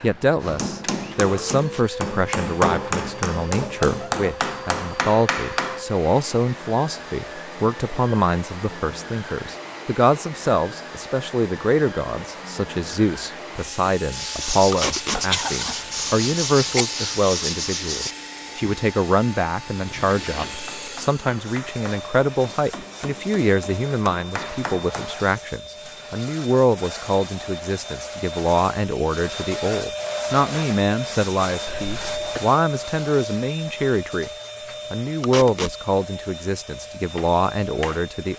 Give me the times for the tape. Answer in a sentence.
The tape can be heard from 1.4 to 1.9 s, from 14.7 to 15.2 s and from 35.2 to 35.8 s.